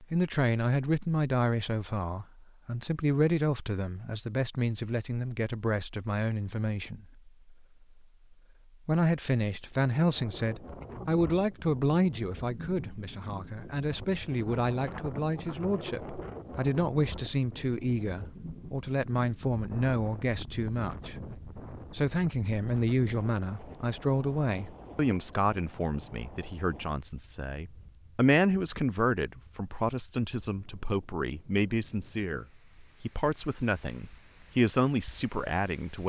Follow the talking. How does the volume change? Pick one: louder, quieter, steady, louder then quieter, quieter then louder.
steady.